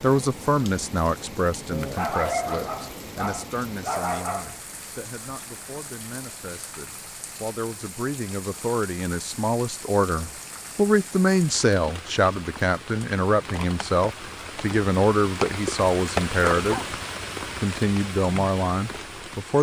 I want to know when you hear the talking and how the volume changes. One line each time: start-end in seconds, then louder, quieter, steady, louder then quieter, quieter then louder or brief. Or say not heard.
0.0-16.8 quieter then louder
17.6-19.5 brief.